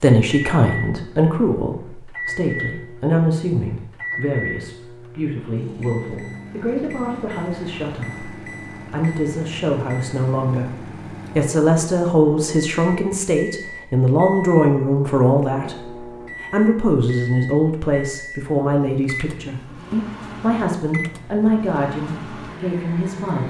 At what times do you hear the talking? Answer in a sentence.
You can hear the talking from 0.0 to 10.8 s and from 11.3 to 23.4 s.